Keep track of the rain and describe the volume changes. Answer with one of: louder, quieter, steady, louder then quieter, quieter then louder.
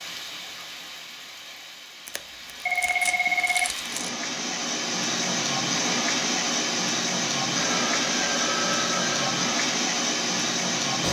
louder.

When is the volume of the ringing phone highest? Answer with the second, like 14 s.
3 s.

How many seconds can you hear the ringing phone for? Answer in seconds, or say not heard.
3 s.